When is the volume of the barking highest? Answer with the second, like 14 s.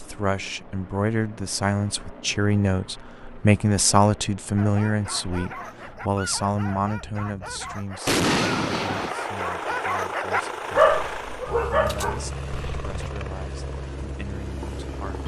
11 s.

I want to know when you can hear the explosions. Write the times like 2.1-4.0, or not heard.
8.1-9.2.